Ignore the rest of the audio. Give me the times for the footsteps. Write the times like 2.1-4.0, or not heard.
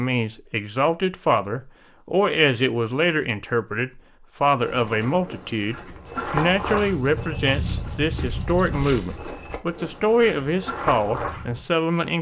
4.5-11.6.